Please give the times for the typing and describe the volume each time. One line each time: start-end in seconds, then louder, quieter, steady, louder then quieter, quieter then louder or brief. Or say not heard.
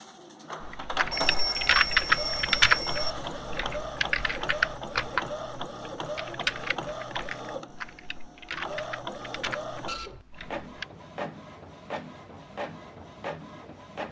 0.6-10.8 quieter.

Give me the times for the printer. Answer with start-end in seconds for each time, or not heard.
0.0-14.0.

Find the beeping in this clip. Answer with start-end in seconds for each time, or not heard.
1.1-3.1.